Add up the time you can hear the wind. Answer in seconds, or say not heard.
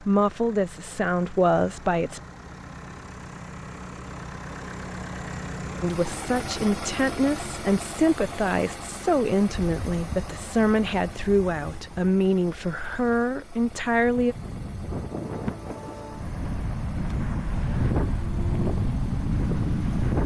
11 s.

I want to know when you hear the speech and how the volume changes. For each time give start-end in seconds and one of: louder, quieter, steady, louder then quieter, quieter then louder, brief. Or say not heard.
0.0-2.2 brief
5.8-14.3 steady.